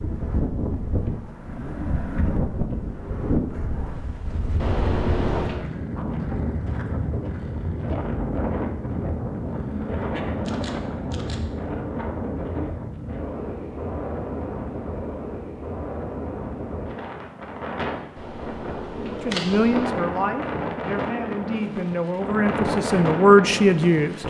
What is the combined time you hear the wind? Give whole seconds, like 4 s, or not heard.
24 s.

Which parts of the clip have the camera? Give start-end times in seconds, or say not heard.
4.5-5.7, 10.4-11.4, 18.1-19.9.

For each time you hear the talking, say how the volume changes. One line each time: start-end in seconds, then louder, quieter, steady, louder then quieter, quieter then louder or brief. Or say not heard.
19.1-24.2 quieter then louder.